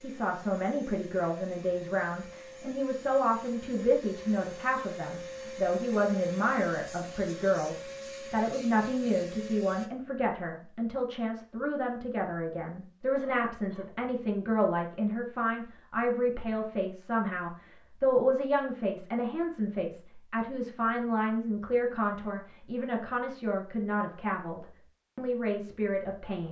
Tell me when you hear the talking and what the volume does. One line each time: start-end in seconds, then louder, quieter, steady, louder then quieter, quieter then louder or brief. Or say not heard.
0.0-26.4 steady.